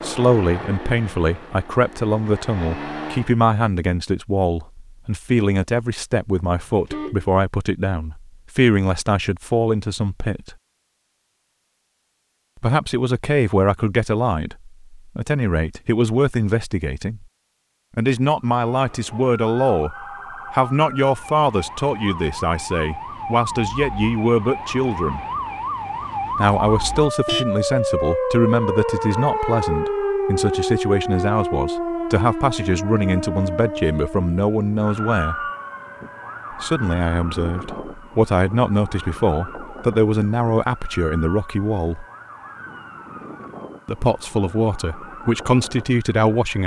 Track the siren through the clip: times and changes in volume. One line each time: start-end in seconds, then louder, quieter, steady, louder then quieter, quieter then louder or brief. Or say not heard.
18.5-46.6 louder then quieter.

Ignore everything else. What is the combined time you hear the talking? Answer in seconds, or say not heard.
40 s.